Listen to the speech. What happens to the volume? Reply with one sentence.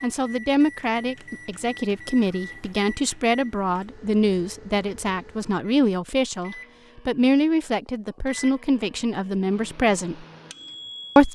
The loudness of the speech stays about the same.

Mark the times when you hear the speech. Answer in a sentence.
The speech can be heard from 0.0 to 10.2 s.